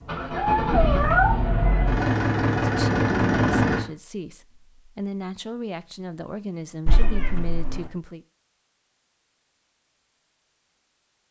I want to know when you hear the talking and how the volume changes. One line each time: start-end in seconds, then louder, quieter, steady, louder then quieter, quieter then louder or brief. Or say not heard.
2.5-8.2 quieter then louder.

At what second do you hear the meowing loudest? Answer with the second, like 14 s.
1 s.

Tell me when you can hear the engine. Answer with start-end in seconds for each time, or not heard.
0.0-3.9.